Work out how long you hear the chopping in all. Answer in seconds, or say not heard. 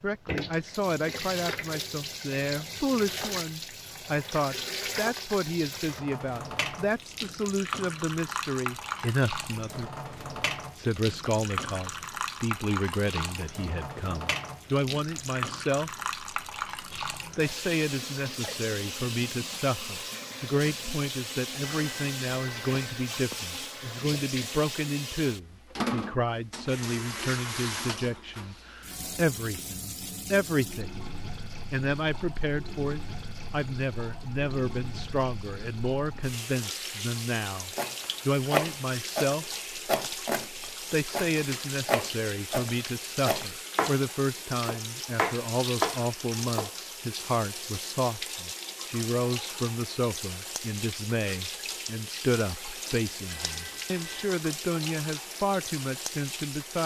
9 s.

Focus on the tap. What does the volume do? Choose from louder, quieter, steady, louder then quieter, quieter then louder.
steady.